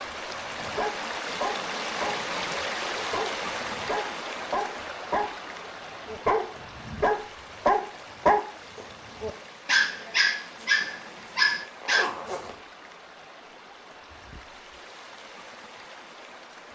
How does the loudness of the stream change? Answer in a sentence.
The loudness of the stream goes down.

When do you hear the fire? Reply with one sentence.
The fire can't be heard in this clip.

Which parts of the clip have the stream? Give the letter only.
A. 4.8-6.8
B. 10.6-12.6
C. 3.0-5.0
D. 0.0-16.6
D.